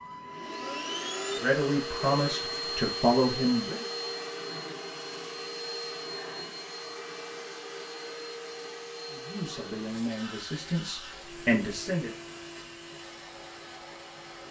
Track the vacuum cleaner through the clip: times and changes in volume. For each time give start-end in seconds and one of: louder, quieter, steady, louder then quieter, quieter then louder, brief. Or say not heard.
0.0-14.4 quieter.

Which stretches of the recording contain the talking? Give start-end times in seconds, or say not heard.
1.4-3.9, 9.1-12.2.